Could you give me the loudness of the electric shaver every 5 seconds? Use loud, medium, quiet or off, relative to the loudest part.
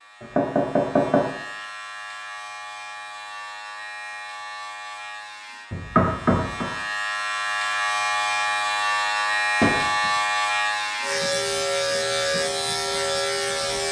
quiet, loud, loud.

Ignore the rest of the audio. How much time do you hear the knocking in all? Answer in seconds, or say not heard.
3 s.